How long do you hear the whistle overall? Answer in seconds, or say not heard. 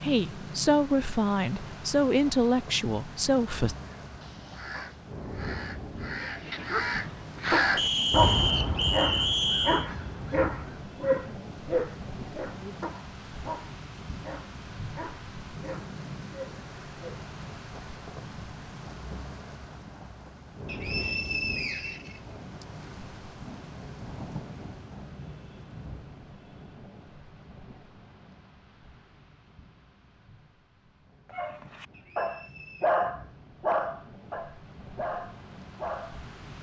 5 s.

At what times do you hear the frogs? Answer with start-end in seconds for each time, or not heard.
not heard.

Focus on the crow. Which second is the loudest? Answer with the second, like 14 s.
8 s.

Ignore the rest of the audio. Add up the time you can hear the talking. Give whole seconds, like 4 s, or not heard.
4 s.